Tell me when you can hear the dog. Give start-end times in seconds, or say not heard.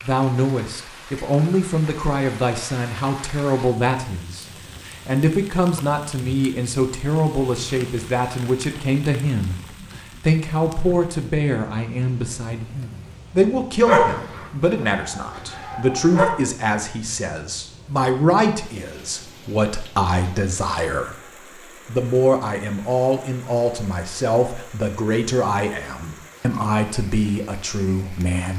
13.8-16.3.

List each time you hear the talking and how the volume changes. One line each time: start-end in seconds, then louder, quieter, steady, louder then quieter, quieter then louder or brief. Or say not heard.
0.0-28.5 steady.